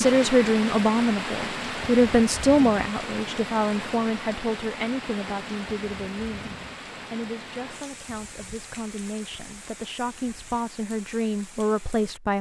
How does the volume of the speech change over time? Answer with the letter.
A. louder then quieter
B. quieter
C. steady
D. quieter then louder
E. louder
D.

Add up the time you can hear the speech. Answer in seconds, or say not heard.
12 s.